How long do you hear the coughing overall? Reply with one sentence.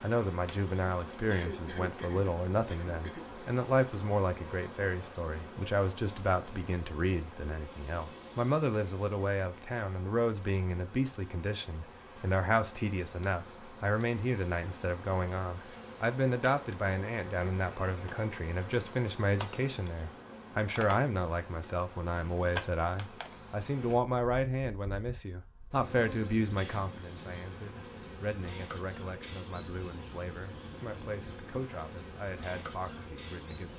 You can hear the coughing for 2 seconds altogether.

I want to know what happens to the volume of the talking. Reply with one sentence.
The loudness of the talking goes down.